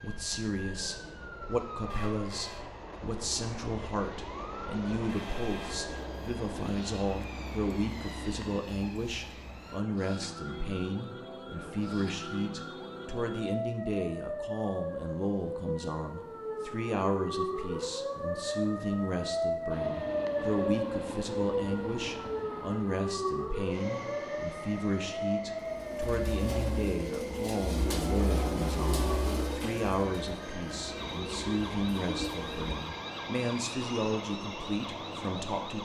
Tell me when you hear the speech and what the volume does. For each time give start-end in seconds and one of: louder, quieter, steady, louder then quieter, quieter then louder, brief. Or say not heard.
0.0-35.8 steady.